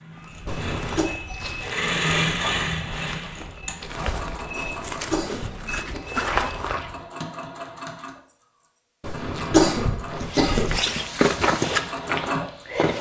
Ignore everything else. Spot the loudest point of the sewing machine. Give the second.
2 s.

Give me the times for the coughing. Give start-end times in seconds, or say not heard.
0.5-1.1, 4.6-6.0, 9.0-10.8.